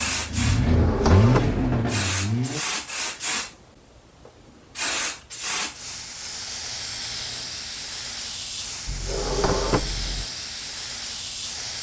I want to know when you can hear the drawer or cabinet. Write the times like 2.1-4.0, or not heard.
0.6-1.6, 8.8-10.2.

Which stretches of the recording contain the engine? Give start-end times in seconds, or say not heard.
0.0-2.6.